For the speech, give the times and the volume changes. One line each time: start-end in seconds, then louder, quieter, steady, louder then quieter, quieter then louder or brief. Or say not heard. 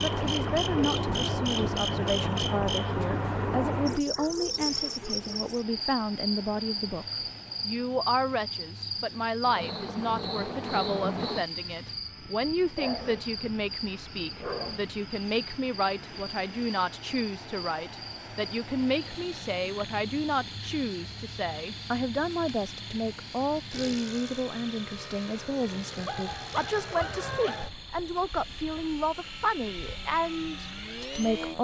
0.0-7.0 steady
7.7-31.6 steady.